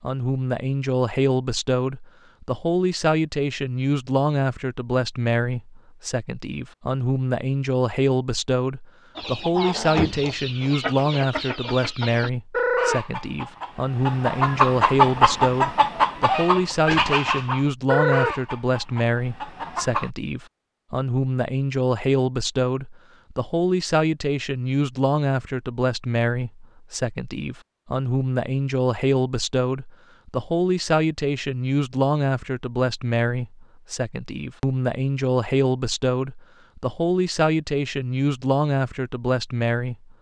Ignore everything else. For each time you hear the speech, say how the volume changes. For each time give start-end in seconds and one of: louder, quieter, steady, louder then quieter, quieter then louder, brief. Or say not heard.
0.0-40.1 steady.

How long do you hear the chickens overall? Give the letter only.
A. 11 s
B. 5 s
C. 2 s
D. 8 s
A.